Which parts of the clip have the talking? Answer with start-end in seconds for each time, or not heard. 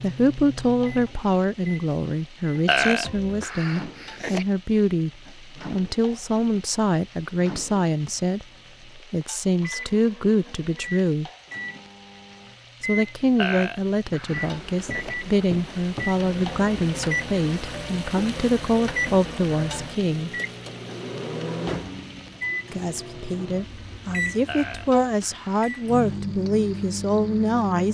0.0-11.3, 12.8-20.3, 22.7-27.8.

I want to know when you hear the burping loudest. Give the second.
3 s.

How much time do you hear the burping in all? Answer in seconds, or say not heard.
5 s.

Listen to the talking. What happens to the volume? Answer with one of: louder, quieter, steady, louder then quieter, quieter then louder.
steady.